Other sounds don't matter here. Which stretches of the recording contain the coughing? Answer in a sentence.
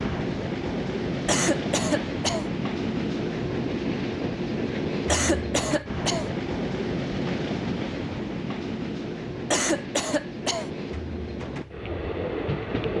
The coughing can be heard from 1.2 to 2.5 s, from 5.0 to 6.3 s and from 9.5 to 10.7 s.